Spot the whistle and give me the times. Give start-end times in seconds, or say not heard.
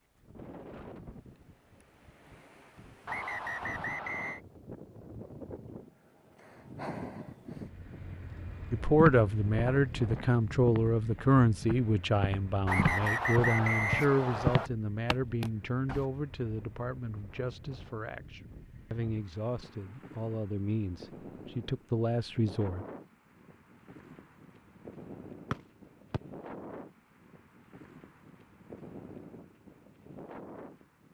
3.0-4.4, 12.7-14.7, 25.5-26.2.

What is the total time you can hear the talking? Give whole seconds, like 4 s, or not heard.
14 s.